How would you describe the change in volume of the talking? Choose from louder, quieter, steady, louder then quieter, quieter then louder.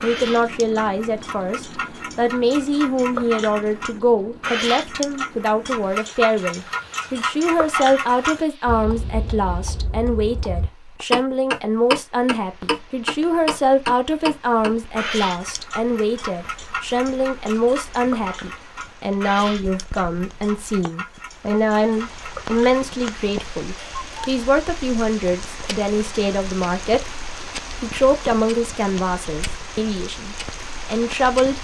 steady.